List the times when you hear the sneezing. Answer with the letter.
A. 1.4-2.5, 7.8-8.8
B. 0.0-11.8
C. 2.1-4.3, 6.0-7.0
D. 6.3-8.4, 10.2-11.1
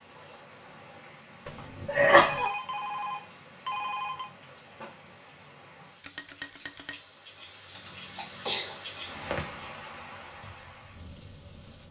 A.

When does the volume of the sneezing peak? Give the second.
2 s.